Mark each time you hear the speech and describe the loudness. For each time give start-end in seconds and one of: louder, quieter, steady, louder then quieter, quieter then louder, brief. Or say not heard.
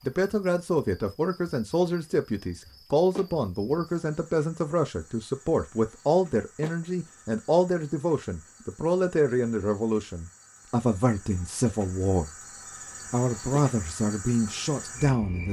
0.1-12.3 steady
13.1-15.4 brief.